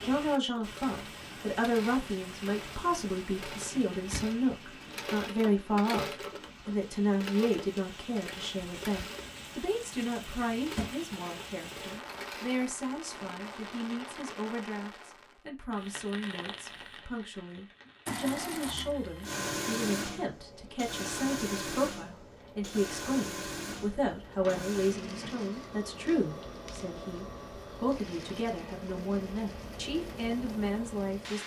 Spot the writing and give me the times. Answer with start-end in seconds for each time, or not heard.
not heard.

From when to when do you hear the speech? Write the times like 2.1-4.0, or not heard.
0.0-31.4.